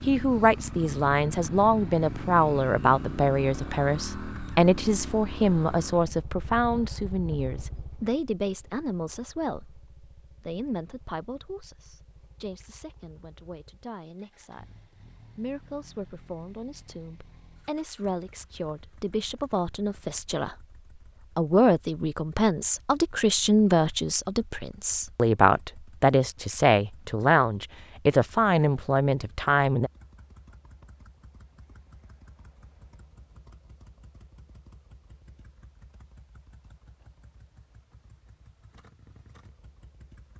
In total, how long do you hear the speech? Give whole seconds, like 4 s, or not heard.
29 s.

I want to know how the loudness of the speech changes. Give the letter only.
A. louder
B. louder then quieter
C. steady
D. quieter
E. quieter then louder
E.